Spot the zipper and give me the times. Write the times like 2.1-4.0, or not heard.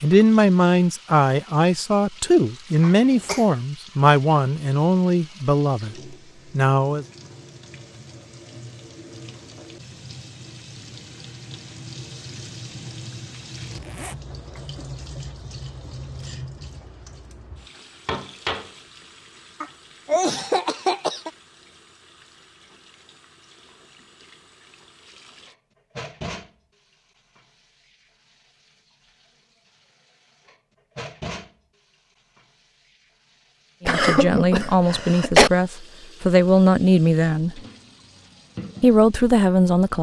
13.6-14.2.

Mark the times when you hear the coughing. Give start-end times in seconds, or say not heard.
2.8-3.5, 19.6-21.3, 33.9-35.5.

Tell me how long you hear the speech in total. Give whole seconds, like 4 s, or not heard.
12 s.